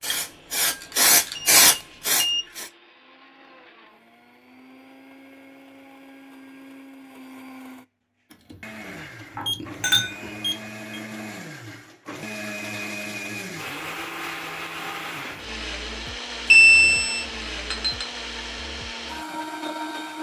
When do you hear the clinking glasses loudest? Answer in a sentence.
The loudest moment of the clinking glasses is at 10 seconds.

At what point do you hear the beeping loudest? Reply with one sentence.
The volume of the beeping peaks at 17 seconds.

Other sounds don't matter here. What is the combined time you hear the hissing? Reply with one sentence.
You can hear the hissing for 3 seconds altogether.